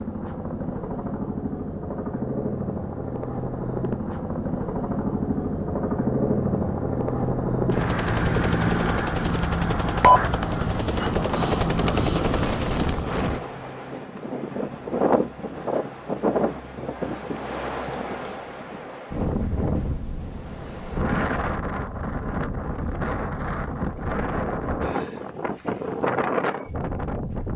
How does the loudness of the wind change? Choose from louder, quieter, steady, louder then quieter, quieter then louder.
steady.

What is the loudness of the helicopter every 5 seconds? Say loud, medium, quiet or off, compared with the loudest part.
medium, loud, loud, off, off, off.